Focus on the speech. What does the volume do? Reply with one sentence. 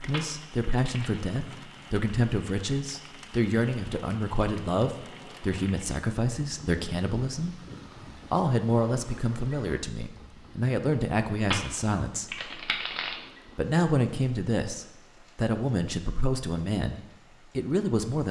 The volume of the speech stays about the same.